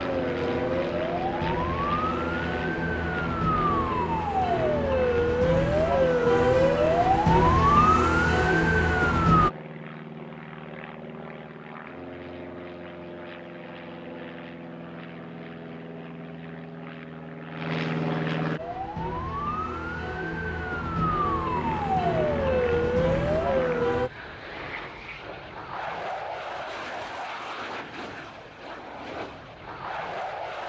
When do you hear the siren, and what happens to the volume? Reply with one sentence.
You can hear the siren from 0.0 to 9.5 s, getting louder; and from 18.6 to 24.1 s, getting louder.